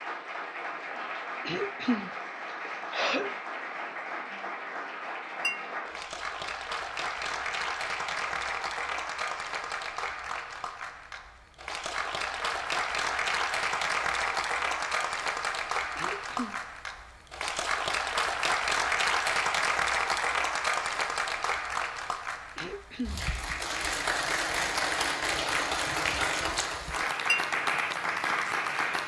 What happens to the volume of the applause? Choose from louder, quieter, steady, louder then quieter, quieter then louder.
louder.